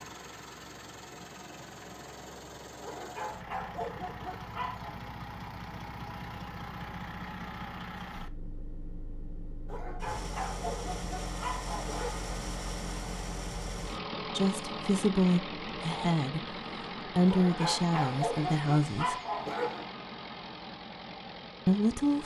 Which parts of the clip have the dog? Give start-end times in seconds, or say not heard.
2.8-5.0, 9.7-12.3, 17.2-19.9.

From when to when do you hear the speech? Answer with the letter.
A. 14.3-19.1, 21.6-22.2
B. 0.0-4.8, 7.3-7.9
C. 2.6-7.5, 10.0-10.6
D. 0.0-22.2
A.